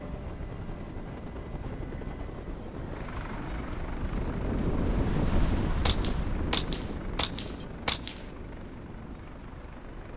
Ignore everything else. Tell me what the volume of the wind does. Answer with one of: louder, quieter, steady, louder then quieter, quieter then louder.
louder then quieter.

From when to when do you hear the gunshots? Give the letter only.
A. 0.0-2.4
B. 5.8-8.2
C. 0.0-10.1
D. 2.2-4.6
B.